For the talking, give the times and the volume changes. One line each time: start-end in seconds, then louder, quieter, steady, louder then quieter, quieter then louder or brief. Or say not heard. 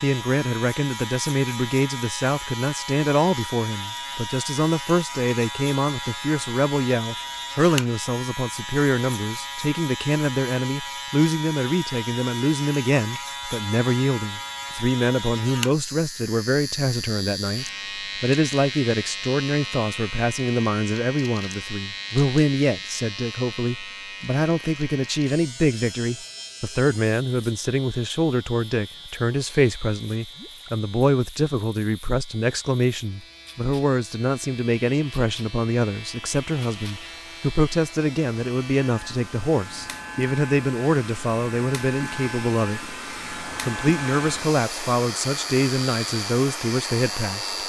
0.0-47.5 steady.